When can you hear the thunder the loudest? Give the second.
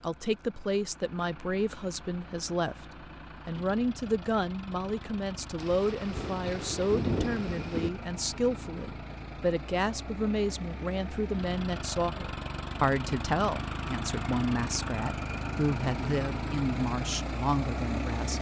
7 s.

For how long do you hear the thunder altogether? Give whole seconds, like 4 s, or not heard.
2 s.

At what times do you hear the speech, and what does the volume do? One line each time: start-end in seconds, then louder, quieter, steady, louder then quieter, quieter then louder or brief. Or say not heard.
0.0-18.3 steady.